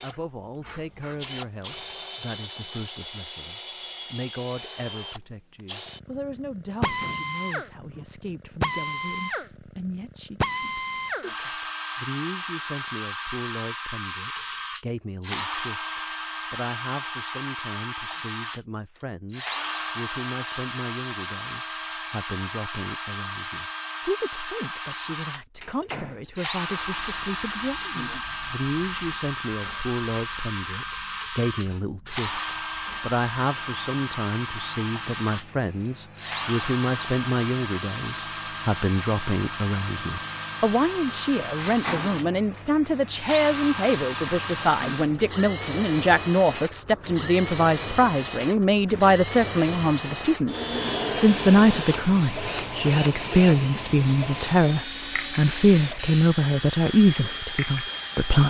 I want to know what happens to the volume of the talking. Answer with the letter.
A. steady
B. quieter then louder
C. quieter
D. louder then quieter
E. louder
E.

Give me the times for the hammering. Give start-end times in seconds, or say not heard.
not heard.